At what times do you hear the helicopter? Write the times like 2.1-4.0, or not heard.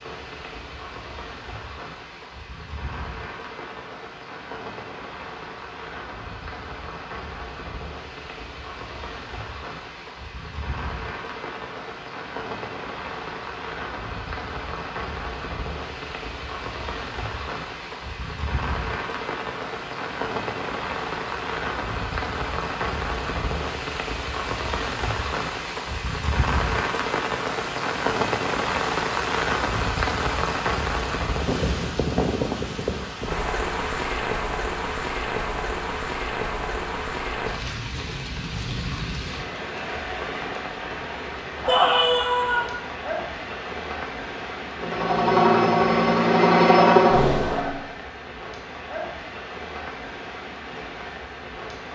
44.8-47.7.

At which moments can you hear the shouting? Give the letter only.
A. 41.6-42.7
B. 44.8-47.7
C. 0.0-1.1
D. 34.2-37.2
A.